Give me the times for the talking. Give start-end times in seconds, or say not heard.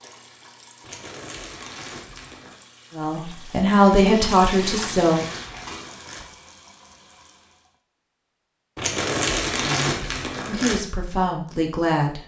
3.0-5.2, 9.4-12.2.